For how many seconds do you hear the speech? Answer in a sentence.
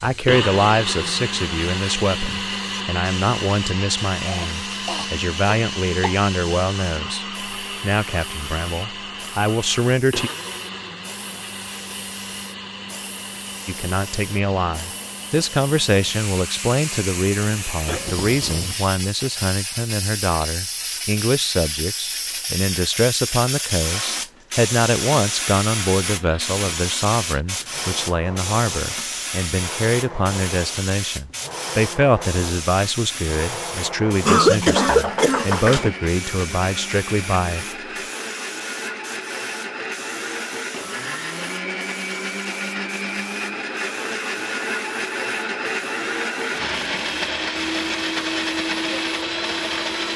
The speech can be heard for 34 seconds in total.